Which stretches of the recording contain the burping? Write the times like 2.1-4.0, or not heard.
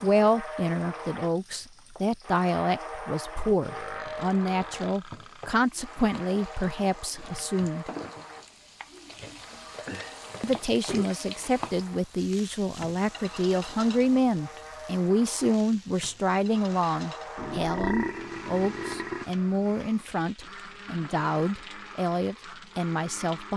3.6-5.6, 9.8-11.1, 17.4-19.2.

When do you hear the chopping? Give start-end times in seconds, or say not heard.
not heard.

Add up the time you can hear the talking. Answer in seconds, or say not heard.
21 s.